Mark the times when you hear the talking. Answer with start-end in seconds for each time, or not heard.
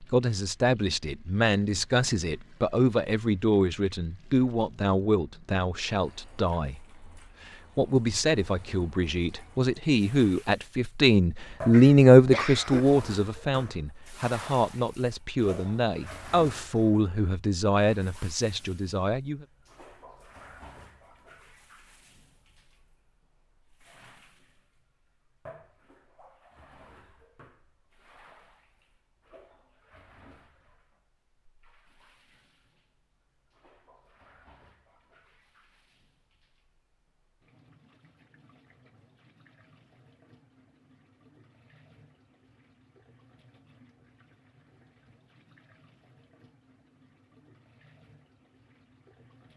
0.0-19.4.